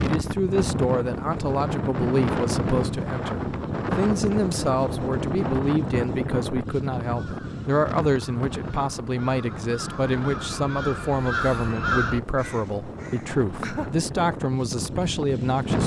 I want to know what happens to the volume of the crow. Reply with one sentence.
The volume of the crow goes up, then down.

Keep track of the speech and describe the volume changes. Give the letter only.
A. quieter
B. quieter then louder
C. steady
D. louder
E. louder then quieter
C.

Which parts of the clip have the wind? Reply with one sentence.
The wind can be heard from 0.0 to 15.8 s.